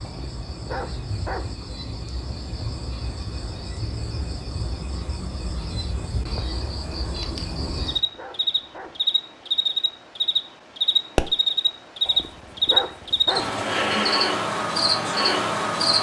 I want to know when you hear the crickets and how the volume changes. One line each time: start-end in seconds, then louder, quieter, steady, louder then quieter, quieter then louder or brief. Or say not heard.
0.0-15.9 louder.